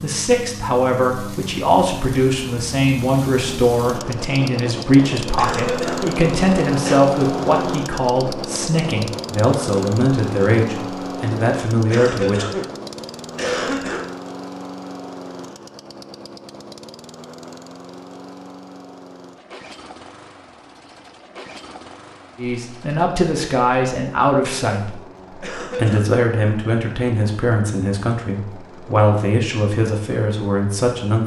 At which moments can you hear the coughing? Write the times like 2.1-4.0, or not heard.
5.3-7.0, 11.9-14.1, 25.4-26.1.